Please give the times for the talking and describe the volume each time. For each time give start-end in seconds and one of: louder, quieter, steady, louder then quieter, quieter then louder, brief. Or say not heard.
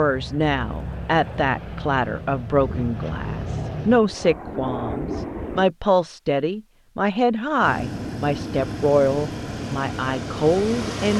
0.0-11.1 steady.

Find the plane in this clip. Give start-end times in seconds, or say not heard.
0.0-5.7, 7.6-11.1.